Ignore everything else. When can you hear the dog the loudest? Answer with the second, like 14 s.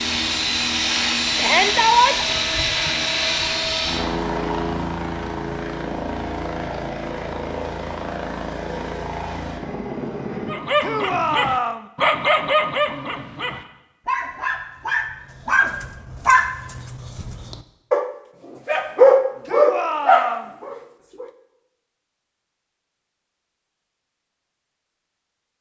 19 s.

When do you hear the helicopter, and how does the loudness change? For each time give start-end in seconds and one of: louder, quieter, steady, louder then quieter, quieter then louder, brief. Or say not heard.
0.0-10.6 quieter.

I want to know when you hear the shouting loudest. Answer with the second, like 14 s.
2 s.